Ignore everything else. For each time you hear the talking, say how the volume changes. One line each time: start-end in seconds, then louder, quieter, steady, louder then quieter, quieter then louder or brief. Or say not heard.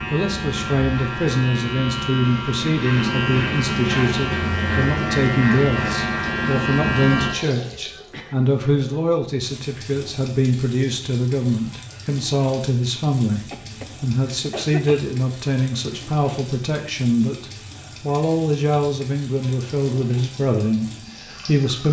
0.1-21.8 steady.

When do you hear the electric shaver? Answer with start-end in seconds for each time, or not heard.
0.0-7.3.